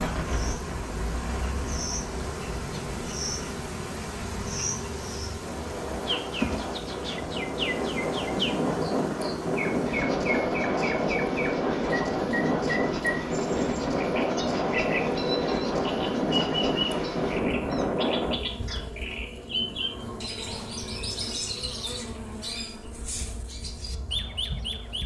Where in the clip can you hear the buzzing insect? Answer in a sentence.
You can hear the buzzing insect from 0.0 to 25.0 s.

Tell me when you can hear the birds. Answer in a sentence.
The birds can be heard from 0.2 to 25.0 s.